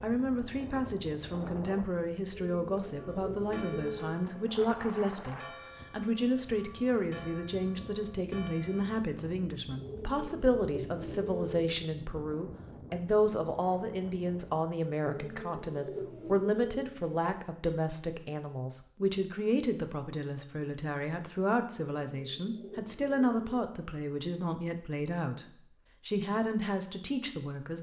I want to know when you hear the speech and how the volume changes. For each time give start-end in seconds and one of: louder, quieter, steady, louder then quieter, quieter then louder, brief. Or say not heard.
0.0-27.7 steady.